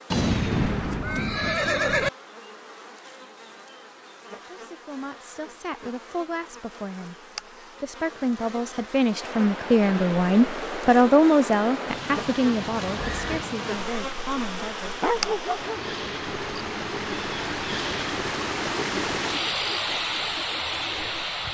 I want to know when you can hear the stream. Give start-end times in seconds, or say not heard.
9.1-21.4.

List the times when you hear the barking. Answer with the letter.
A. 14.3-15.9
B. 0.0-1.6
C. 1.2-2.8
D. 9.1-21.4
A.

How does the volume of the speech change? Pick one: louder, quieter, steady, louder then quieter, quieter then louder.
louder then quieter.